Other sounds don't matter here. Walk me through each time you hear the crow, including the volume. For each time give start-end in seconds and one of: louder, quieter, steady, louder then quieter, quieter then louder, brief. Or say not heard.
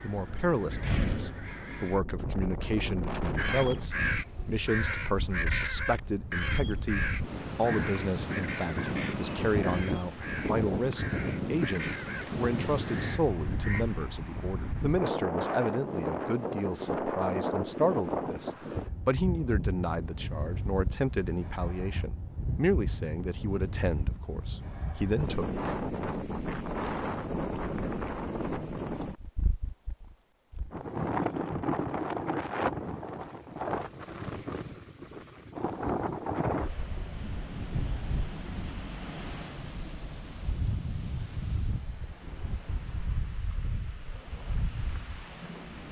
3.4-13.8 quieter.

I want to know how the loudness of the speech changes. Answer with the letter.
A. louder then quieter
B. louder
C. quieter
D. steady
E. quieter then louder
D.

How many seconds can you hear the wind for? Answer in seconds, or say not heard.
46 s.